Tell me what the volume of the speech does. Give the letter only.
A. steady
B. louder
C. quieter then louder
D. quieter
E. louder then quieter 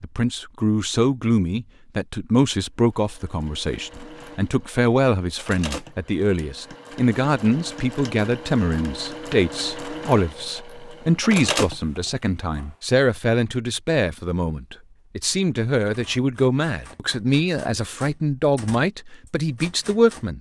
A.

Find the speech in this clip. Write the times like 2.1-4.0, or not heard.
0.0-20.3.